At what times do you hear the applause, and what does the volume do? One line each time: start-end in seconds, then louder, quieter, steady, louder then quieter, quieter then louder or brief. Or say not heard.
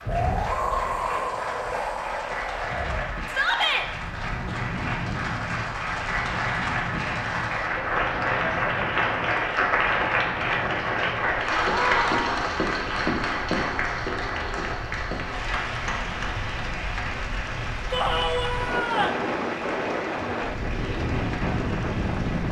0.0-22.4 louder then quieter.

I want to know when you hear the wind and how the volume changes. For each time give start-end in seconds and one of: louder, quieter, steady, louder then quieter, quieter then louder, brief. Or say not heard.
0.0-22.4 quieter then louder.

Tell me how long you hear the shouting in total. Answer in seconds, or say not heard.
3 s.